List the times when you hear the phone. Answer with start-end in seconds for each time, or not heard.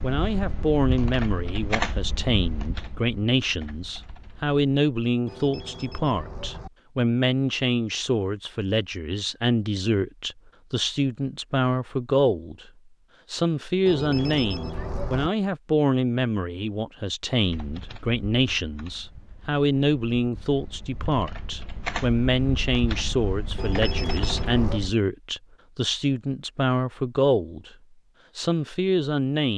5.2-6.7, 13.8-15.3, 23.6-24.9.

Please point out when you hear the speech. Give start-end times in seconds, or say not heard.
0.0-12.7, 13.3-27.8, 28.4-29.5.